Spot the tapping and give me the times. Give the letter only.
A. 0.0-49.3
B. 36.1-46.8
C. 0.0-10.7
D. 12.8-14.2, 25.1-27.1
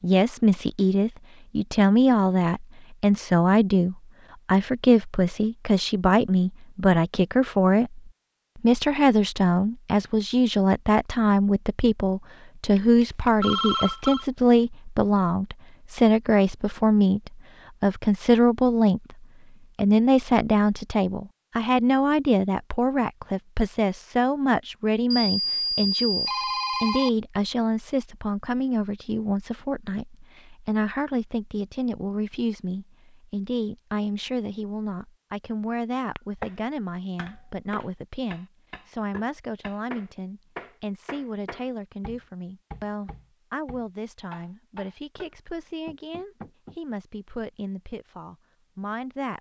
B.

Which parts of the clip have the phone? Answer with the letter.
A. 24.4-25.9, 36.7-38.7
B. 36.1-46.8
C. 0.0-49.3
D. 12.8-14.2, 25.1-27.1
D.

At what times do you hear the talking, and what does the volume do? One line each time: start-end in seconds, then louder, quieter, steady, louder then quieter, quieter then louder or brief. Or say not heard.
0.0-49.3 quieter.